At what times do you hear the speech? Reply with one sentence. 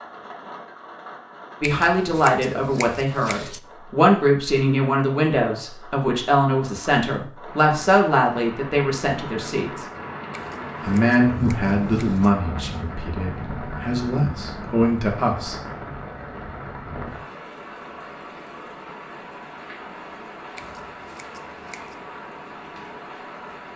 You can hear the speech from 1.6 to 9.8 s and from 10.8 to 15.6 s.